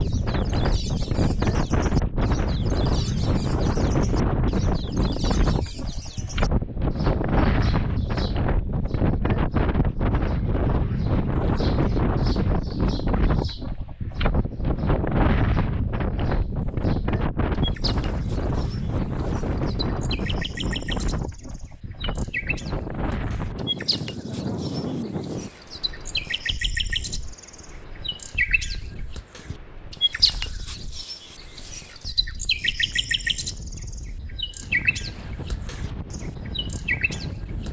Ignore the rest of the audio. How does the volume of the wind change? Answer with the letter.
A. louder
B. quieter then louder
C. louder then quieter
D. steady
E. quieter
E.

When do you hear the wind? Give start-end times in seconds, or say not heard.
0.0-37.6.